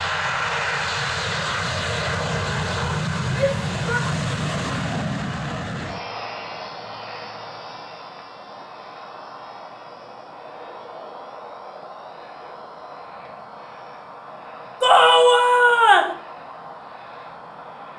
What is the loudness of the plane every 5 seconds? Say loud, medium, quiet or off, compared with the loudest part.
loud, medium, quiet, quiet.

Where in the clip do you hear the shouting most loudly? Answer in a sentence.
The volume of the shouting peaks at 15 seconds.